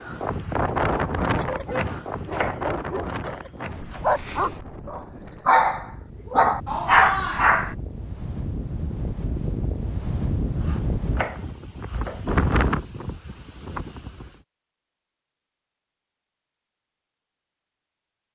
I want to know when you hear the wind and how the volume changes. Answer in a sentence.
You can hear the wind from 0.0 to 14.3 s, getting quieter then louder.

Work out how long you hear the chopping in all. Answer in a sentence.
The chopping can be heard for 4 seconds in total.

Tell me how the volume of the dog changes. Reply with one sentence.
The loudness of the dog goes up.